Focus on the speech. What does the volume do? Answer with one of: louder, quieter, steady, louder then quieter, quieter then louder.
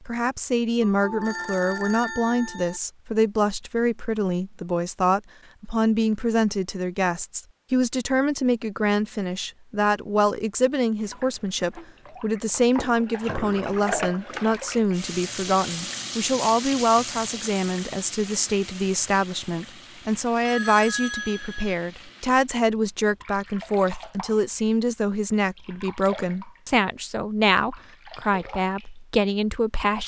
steady.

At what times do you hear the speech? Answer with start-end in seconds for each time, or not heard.
0.1-30.0.